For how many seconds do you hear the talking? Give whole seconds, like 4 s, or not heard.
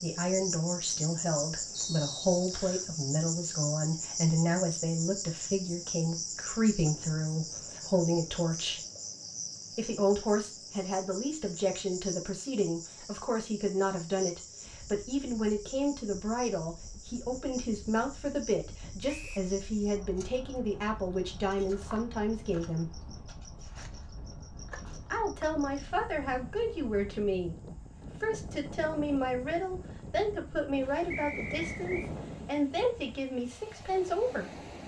31 s.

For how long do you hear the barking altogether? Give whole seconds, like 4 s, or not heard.
not heard.